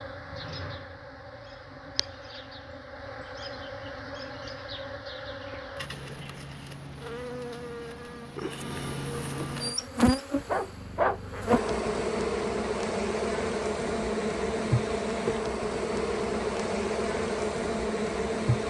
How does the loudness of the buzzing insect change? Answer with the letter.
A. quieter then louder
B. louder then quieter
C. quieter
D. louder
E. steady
D.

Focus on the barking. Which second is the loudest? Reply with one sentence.
The loudest moment of the barking is at 11 seconds.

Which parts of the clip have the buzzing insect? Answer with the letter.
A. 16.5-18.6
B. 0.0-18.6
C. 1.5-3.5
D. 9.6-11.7
B.